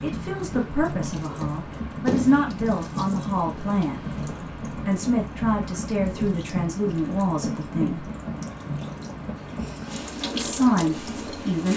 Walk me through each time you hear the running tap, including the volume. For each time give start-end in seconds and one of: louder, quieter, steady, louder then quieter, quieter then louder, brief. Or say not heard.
0.0-11.7 steady.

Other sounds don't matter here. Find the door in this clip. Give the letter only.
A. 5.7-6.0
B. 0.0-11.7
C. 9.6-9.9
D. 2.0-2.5
D.